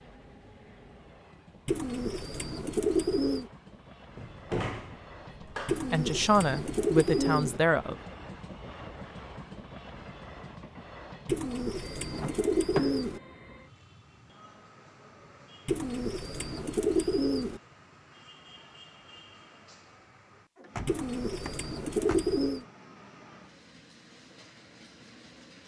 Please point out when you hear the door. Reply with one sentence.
You can hear the door from 4.2 to 5.9 s, from 12.2 to 12.9 s and from 20.6 to 22.4 s.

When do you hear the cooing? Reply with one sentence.
You can hear the cooing from 1.6 to 3.5 s, from 5.7 to 7.6 s, from 11.2 to 13.2 s, from 15.7 to 17.6 s and from 20.9 to 22.6 s.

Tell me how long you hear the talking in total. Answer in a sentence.
The talking can be heard for 2 seconds in total.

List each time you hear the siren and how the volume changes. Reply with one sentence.
The siren can't be heard in this clip.